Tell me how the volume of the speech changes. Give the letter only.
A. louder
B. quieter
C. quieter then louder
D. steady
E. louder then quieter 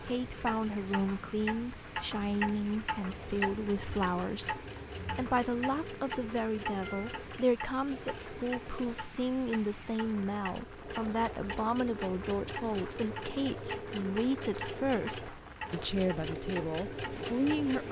D.